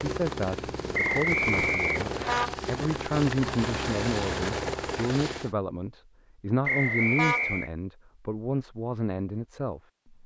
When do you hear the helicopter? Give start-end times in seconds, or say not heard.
0.0-5.5.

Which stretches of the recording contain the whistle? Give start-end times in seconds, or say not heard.
0.9-2.5, 6.7-7.7.